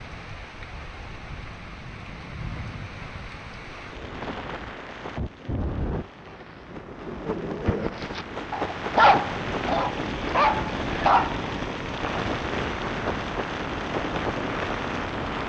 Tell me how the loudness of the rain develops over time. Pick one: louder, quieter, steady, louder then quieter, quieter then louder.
louder.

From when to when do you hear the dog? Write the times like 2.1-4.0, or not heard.
8.0-11.5.